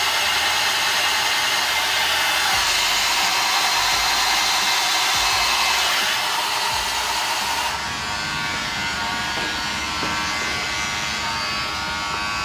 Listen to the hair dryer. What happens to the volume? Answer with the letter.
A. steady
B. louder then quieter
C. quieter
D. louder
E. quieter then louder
C.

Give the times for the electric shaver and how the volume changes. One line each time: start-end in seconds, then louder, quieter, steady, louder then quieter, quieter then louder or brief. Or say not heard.
0.0-12.4 louder.